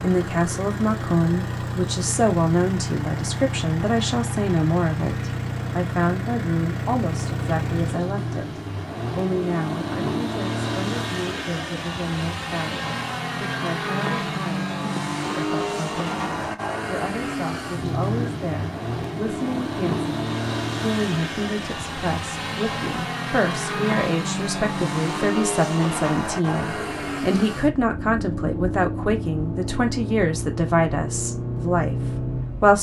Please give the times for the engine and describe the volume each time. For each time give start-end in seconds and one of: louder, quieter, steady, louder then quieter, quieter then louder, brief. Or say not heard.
0.0-32.7 steady.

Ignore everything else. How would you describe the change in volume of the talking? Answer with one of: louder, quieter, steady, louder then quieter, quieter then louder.
quieter then louder.